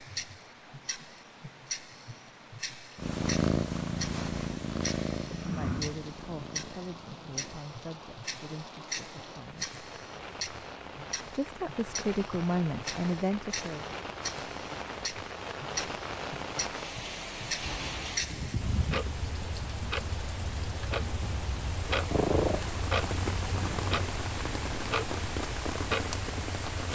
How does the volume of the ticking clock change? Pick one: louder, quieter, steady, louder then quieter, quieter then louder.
louder.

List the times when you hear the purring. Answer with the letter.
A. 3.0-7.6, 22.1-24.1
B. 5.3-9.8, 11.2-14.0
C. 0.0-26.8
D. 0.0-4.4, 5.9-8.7
A.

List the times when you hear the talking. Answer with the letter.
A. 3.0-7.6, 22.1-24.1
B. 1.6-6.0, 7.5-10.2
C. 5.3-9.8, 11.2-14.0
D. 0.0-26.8
C.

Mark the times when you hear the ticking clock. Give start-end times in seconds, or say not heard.
0.0-26.8.